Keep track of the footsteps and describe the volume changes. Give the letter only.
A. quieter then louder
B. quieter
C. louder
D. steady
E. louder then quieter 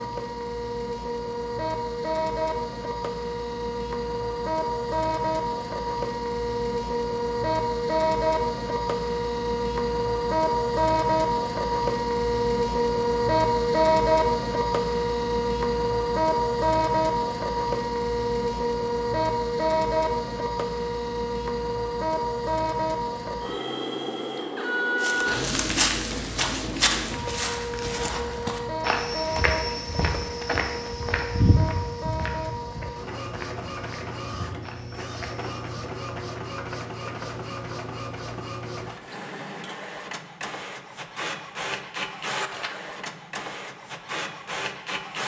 B.